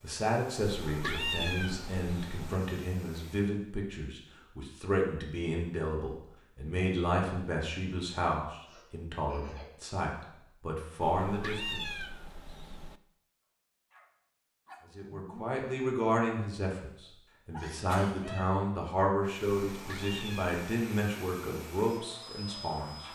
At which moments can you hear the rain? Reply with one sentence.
You can't hear the rain here.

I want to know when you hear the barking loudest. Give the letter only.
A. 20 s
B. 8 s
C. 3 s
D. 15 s
D.